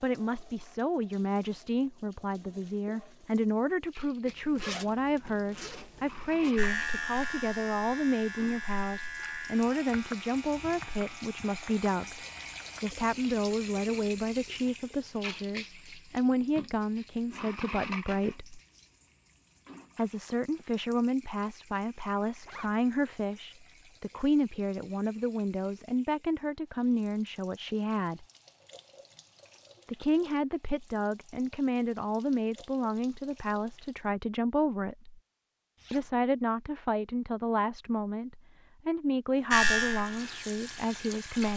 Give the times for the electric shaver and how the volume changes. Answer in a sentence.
The electric shaver can be heard from 6.5 to 12.8 s, getting quieter; and briefly from 39.5 to 41.2 s.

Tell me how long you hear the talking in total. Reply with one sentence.
The talking can be heard for 38 seconds in total.